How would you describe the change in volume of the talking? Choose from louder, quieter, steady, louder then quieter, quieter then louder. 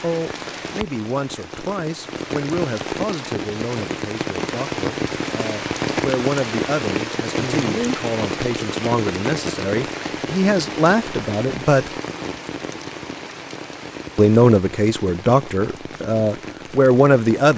louder.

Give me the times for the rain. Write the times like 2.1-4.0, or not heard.
0.0-17.5.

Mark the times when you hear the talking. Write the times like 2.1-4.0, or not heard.
0.0-11.9, 14.2-17.5.